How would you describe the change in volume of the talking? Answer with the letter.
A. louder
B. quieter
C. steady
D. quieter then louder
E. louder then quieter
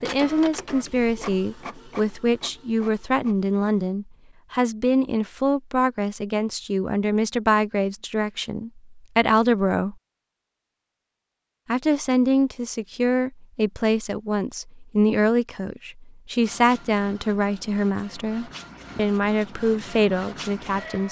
C.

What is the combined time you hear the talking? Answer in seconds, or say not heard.
19 s.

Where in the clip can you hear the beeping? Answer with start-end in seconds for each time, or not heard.
not heard.